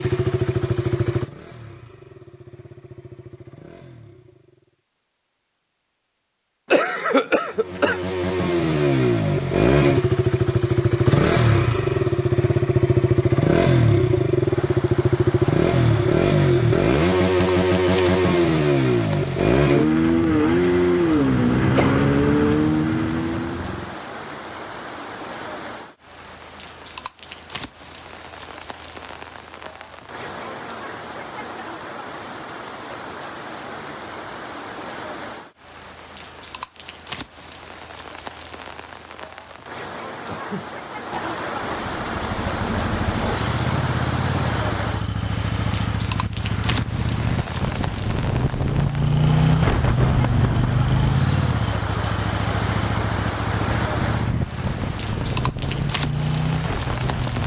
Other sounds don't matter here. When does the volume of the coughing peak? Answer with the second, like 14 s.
7 s.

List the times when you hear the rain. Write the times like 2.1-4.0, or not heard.
14.3-57.4.